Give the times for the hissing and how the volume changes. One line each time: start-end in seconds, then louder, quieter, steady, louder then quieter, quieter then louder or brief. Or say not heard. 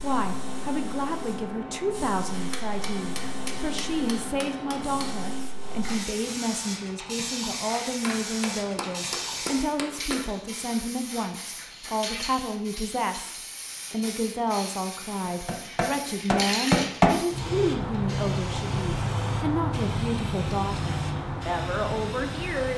0.0-22.7 louder.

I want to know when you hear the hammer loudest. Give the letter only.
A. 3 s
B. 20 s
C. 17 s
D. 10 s
C.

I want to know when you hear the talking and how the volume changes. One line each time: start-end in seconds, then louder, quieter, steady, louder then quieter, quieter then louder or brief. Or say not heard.
0.0-22.7 steady.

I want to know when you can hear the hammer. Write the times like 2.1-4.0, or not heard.
2.3-5.2, 8.0-10.3, 15.2-17.2.